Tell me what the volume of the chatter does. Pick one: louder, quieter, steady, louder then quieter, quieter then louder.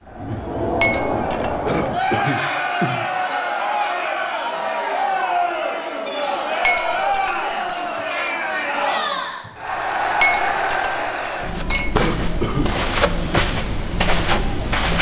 quieter.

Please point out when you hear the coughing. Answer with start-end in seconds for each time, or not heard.
1.6-3.0, 11.9-13.2.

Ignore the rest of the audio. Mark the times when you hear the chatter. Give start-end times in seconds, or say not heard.
0.0-14.9.